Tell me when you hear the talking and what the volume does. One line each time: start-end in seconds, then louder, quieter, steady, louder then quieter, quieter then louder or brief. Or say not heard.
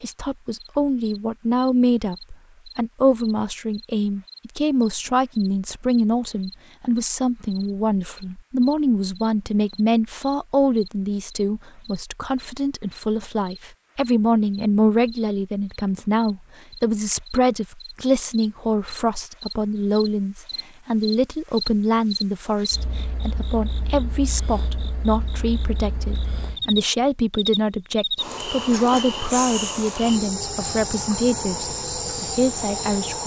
0.0-33.2 steady.